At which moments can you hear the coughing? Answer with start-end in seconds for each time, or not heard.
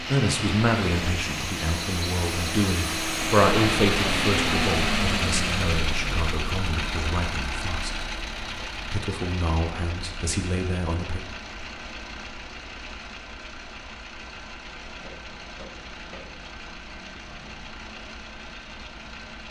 not heard.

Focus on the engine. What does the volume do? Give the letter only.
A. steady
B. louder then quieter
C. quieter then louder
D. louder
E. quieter
E.